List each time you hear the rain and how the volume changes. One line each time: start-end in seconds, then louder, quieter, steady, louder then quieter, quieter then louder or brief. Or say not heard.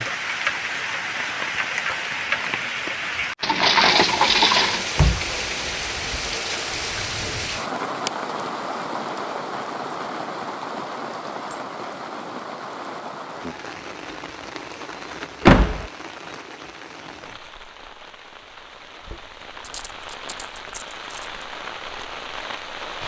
0.0-23.0 quieter.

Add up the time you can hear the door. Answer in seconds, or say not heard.
2 s.